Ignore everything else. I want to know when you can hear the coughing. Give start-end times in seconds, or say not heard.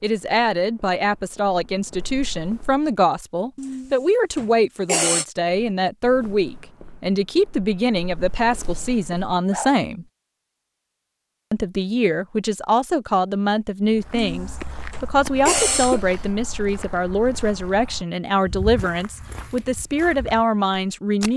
3.5-5.2, 14.1-16.1.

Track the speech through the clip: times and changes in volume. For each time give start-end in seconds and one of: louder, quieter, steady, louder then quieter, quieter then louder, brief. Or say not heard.
0.0-10.1 steady
11.5-21.3 steady.